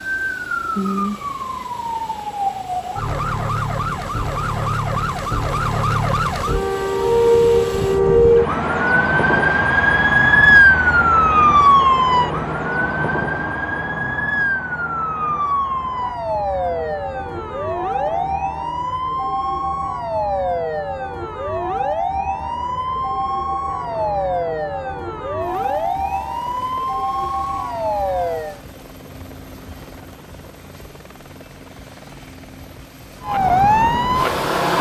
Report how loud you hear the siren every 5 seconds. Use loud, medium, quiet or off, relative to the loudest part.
medium, loud, loud, medium, medium, medium, loud.